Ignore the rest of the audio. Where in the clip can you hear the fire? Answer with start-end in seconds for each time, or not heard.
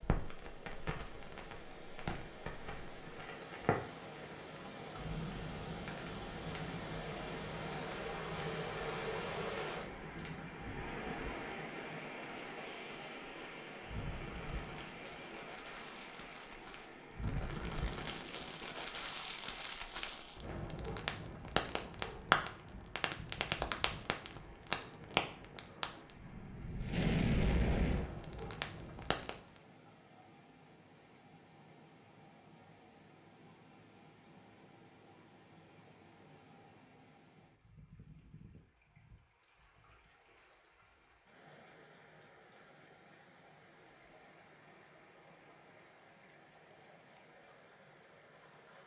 0.0-29.6.